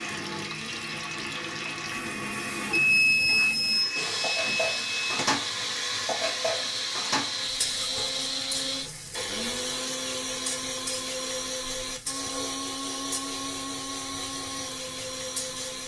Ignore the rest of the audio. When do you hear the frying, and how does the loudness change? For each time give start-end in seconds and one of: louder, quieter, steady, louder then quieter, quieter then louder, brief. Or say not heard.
0.0-15.8 louder then quieter.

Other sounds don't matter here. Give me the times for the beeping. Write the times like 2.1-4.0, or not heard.
2.7-5.2.